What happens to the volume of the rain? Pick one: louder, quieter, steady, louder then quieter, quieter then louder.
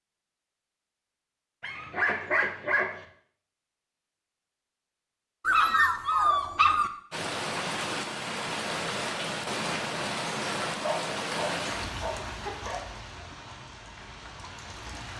quieter.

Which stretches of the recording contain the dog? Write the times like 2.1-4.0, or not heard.
1.6-3.0, 5.5-6.9, 10.8-12.8.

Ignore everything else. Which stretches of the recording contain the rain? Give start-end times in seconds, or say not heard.
7.1-15.1.